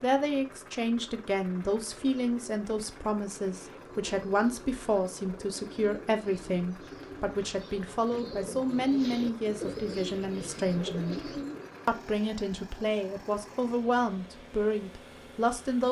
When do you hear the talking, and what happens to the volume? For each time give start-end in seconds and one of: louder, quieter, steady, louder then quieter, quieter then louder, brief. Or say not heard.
0.0-15.8 steady.